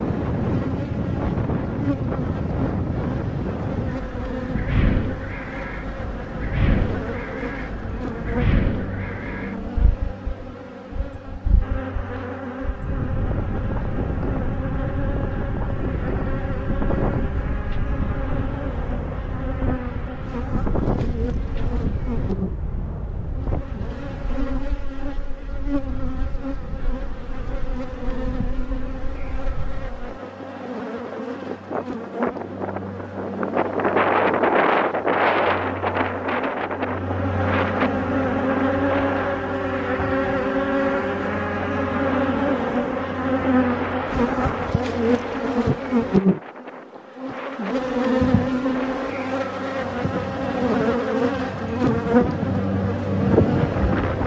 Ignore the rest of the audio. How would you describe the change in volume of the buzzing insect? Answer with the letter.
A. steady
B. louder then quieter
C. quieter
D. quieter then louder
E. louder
E.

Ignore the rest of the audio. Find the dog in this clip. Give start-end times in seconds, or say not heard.
not heard.